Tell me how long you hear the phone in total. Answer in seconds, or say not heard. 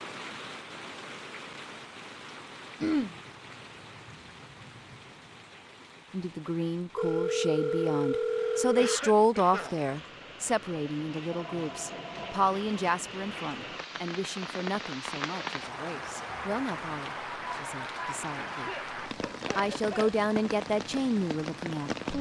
3 s.